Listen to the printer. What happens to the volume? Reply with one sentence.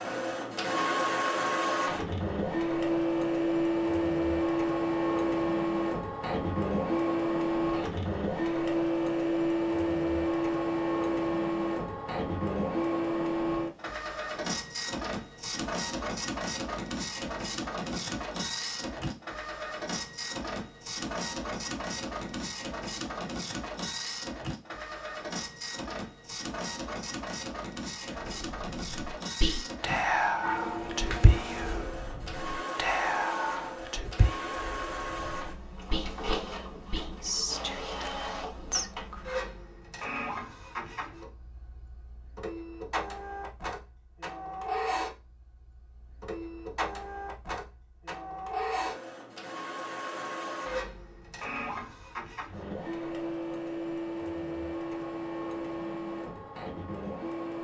The volume of the printer goes down.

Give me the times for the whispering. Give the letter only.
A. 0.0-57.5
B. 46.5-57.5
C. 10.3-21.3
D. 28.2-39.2
D.